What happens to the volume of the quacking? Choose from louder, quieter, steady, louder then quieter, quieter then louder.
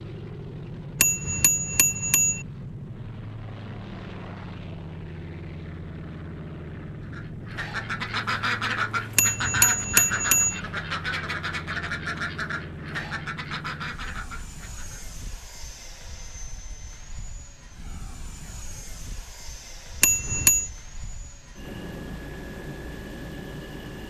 quieter.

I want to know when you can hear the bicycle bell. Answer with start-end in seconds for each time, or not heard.
1.0-2.5, 9.2-10.6, 20.0-20.7.